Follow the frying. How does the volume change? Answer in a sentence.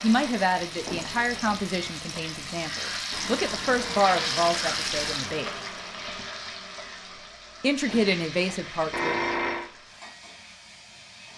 The loudness of the frying goes up, then down.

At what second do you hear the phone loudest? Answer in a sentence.
The volume of the phone peaks at 9 seconds.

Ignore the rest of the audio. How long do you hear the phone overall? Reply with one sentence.
You can hear the phone for 3 seconds altogether.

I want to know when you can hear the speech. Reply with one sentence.
You can hear the speech from 0.0 to 5.5 s and from 7.6 to 9.2 s.